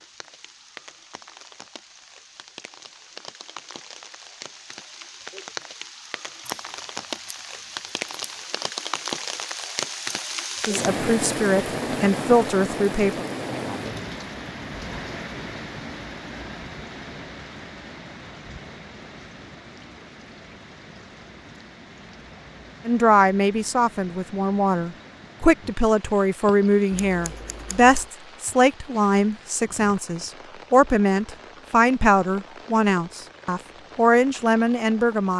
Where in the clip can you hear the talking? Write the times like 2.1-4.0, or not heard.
10.7-13.2, 22.9-35.3.